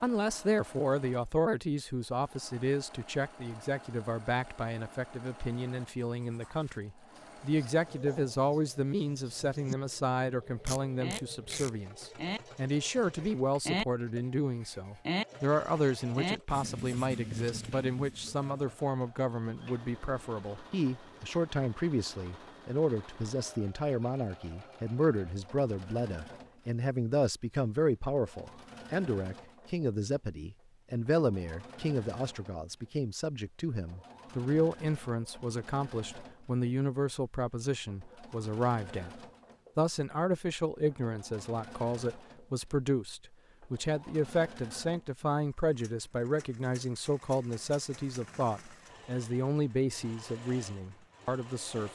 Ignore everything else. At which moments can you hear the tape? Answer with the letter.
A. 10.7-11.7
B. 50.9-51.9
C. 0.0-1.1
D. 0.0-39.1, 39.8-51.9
A.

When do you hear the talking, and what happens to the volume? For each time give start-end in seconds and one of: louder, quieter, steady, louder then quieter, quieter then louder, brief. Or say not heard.
0.0-39.1 steady
39.8-51.9 steady.